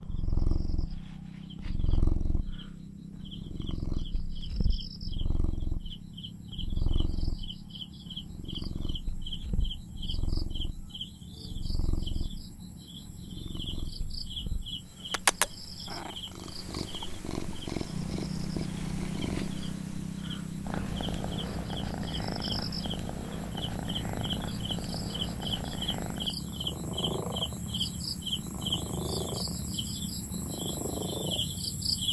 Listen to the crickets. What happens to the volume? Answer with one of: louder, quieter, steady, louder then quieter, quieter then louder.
louder.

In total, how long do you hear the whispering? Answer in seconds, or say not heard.
not heard.